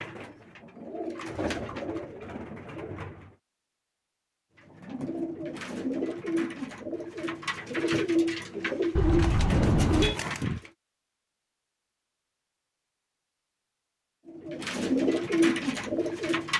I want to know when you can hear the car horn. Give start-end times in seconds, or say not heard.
8.9-10.2.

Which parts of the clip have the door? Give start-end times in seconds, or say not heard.
not heard.